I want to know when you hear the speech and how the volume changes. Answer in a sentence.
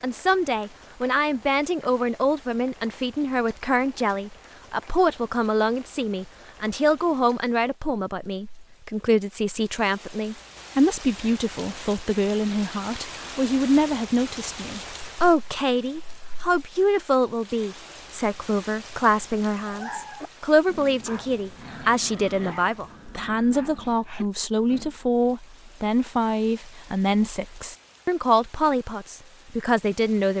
The speech can be heard from 0.0 to 30.3 s, at a steady volume.